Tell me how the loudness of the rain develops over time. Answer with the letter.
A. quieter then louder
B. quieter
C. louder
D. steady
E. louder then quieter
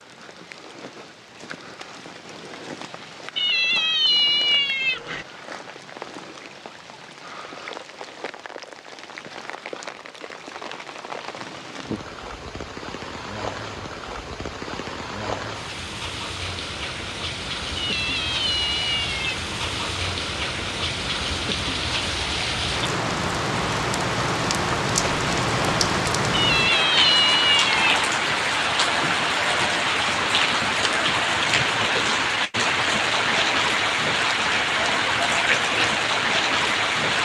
C.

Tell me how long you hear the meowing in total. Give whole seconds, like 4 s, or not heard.
5 s.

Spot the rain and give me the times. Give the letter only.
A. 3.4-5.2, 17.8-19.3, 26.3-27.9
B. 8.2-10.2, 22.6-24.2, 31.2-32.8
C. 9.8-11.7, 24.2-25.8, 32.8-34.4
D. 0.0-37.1
D.